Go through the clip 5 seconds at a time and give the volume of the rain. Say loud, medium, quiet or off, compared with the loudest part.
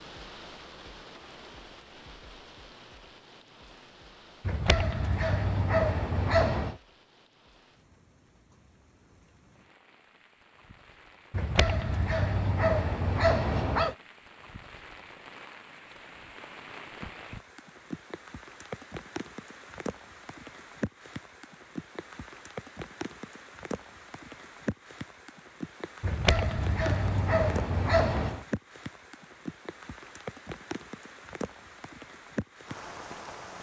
medium, quiet, medium, loud, loud, loud, loud.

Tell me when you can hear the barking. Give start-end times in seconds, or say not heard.
4.5-6.8, 11.3-13.9, 26.0-28.4.